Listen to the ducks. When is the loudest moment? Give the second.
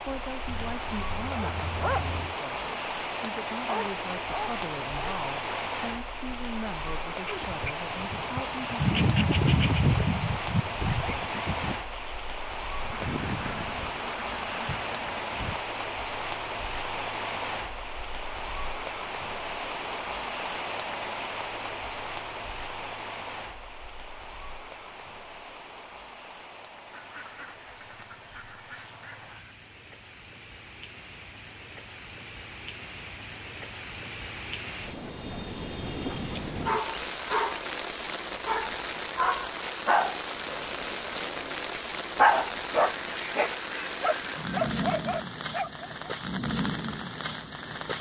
13 s.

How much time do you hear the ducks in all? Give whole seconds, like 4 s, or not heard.
9 s.